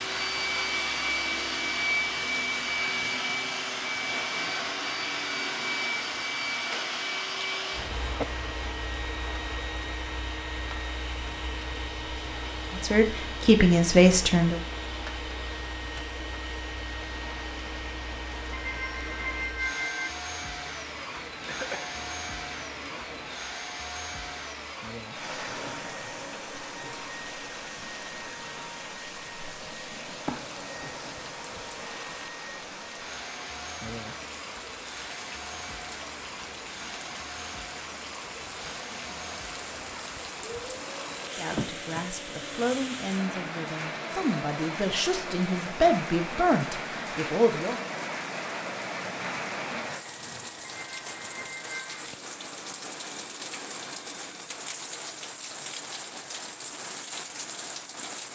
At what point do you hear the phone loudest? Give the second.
20 s.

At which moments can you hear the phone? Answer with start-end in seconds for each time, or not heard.
18.5-20.1, 50.8-52.0.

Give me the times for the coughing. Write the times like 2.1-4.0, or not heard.
7.8-8.6, 21.4-21.9, 41.5-42.5.